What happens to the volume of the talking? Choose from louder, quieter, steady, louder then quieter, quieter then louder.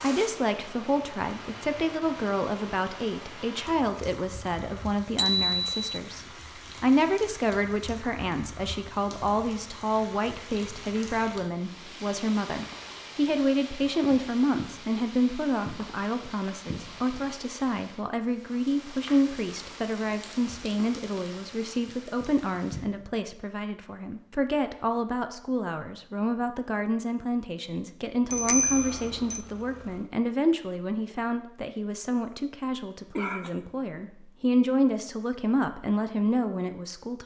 steady.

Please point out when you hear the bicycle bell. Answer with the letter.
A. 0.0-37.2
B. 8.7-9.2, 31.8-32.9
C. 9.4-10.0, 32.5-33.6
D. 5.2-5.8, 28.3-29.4
D.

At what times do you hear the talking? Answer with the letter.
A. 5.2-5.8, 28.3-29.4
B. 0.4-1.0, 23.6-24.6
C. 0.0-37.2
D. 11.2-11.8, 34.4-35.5
C.